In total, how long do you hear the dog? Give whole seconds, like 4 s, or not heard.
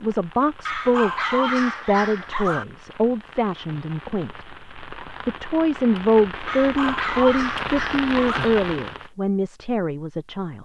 4 s.